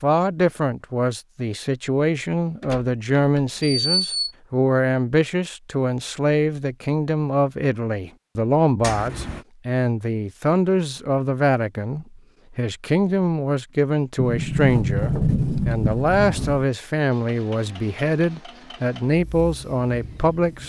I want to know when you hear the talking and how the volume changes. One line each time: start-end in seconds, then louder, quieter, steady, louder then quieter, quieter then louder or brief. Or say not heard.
0.0-20.6 steady.